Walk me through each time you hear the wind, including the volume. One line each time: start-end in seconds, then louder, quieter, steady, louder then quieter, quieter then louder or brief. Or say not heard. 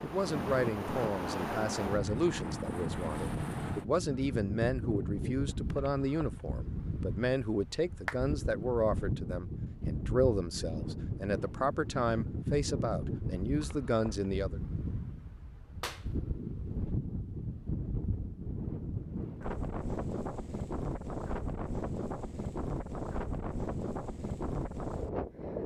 0.0-25.6 steady.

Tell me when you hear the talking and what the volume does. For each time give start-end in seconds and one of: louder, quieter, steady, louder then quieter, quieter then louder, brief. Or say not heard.
0.0-14.6 steady.